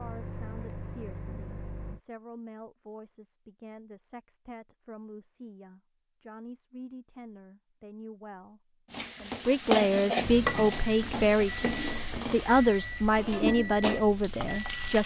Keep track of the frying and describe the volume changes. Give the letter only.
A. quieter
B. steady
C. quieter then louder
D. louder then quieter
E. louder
A.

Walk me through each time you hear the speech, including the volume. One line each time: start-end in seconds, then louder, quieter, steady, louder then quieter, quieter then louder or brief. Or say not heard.
0.0-15.0 louder.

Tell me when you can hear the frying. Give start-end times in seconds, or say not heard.
8.9-15.0.